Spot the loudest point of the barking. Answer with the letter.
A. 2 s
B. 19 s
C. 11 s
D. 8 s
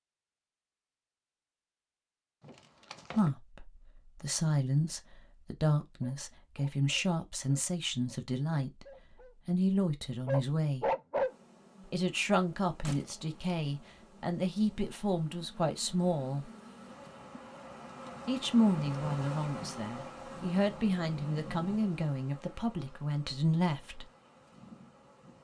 C.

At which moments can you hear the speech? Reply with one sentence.
You can hear the speech from 3.1 to 8.8 s, from 9.4 to 10.9 s, from 11.8 to 16.5 s and from 18.2 to 24.1 s.